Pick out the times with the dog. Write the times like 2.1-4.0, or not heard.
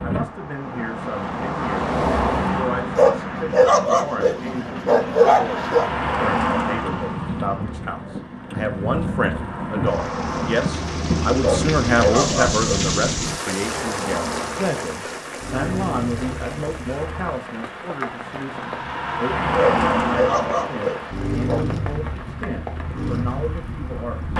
3.0-5.8, 11.4-12.8, 19.6-21.6.